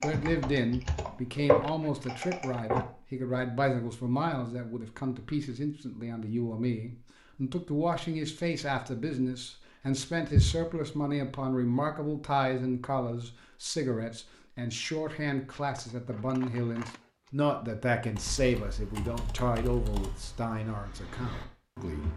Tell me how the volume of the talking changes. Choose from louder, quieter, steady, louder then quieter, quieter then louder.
steady.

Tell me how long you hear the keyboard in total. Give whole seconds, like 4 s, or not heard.
7 s.